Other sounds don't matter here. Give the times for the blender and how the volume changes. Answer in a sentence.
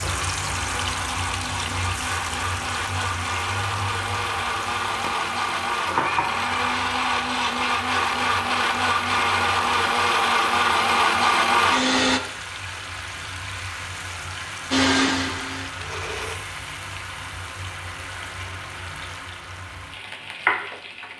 You can hear the blender from 0.0 to 12.2 s, getting louder; and briefly from 14.7 to 16.4 s.